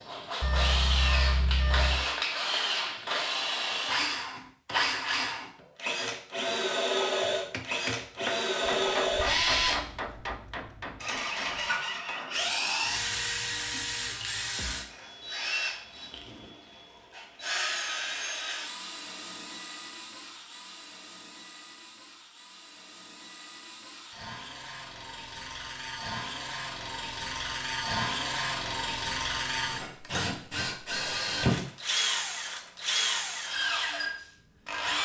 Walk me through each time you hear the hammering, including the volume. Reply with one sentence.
The hammering can be heard from 7.2 to 12.8 s, getting quieter.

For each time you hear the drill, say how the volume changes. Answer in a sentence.
The drill can be heard from 0.0 to 34.9 s, getting quieter then louder.